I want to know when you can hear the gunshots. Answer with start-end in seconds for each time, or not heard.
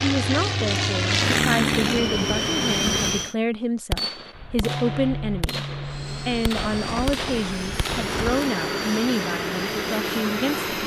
3.9-8.5.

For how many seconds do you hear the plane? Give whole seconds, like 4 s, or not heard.
8 s.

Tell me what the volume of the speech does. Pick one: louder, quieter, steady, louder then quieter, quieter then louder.
steady.